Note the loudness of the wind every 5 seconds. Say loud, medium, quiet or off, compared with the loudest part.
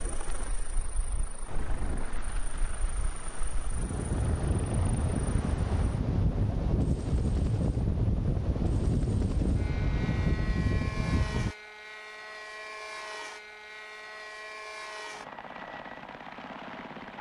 medium, loud, loud, off.